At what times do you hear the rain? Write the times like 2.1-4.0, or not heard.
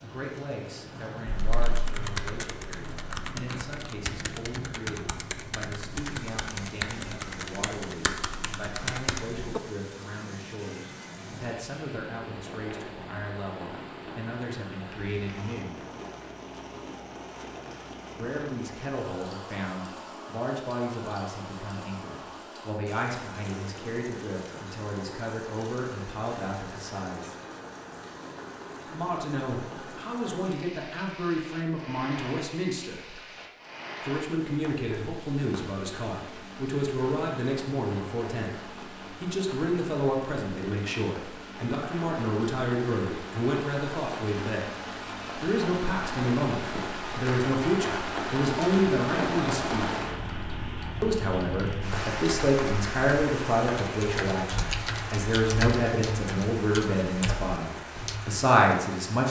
0.0-59.2.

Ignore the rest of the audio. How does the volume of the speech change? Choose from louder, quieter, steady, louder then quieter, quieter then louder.
louder.